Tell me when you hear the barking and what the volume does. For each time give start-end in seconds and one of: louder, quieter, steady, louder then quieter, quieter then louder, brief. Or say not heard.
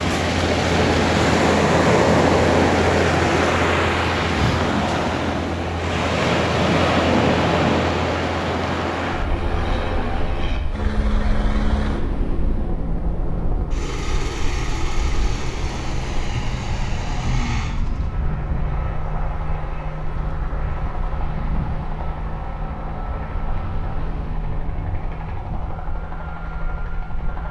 not heard.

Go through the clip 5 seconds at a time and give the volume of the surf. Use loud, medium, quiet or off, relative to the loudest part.
loud, loud, quiet, quiet, quiet, quiet.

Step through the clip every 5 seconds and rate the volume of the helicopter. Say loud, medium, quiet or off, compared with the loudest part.
loud, loud, loud, medium, medium, medium.